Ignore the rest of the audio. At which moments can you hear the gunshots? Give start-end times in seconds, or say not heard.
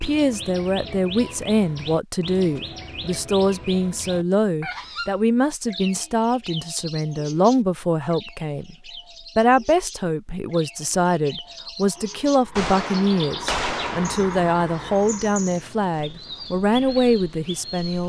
12.6-14.2.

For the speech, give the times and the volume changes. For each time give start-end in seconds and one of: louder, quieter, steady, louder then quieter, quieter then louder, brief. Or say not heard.
0.0-8.8 steady
9.3-18.0 steady.